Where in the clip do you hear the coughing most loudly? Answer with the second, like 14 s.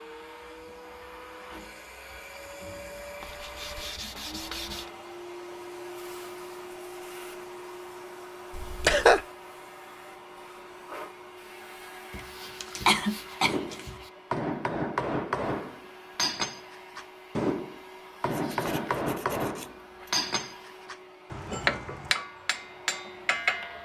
9 s.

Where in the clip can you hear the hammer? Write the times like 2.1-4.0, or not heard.
13.4-23.8.